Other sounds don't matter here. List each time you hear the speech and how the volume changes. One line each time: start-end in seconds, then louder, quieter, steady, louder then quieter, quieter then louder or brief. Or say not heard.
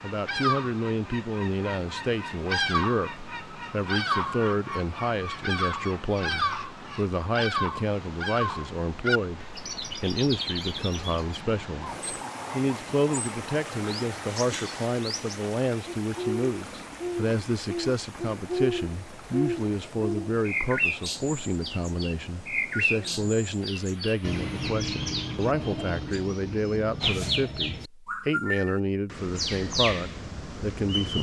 0.0-31.1 steady.